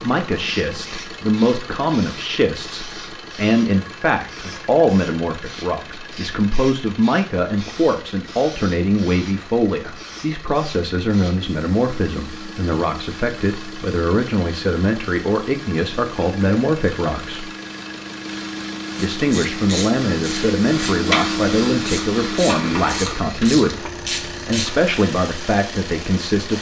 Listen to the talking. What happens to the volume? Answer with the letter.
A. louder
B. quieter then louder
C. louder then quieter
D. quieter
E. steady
E.